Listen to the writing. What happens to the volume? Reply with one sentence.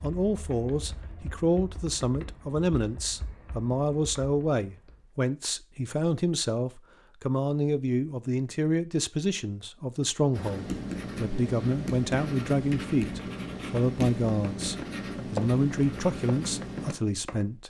The loudness of the writing stays about the same.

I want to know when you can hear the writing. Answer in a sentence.
The writing can be heard from 10.3 to 16.9 s.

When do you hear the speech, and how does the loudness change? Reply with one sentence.
The speech can be heard from 0.0 to 17.6 s, at a steady volume.